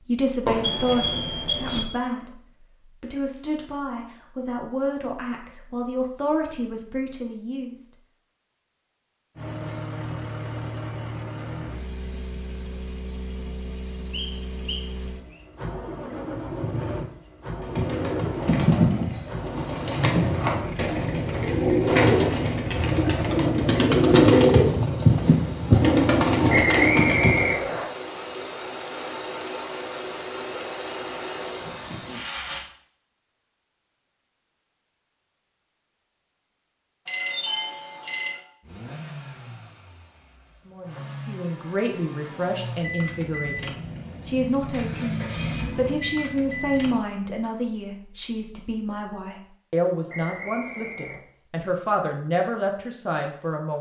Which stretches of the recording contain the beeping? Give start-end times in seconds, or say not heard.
0.5-1.8, 19.1-20.5, 37.0-38.4.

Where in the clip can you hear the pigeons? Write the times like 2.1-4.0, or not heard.
17.6-27.6.